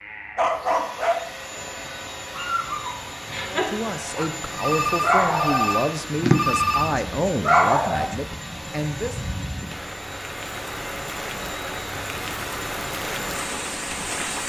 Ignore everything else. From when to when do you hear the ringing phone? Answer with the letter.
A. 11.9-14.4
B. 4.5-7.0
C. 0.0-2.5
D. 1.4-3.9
B.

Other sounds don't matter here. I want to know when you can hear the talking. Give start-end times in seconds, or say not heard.
3.5-9.2.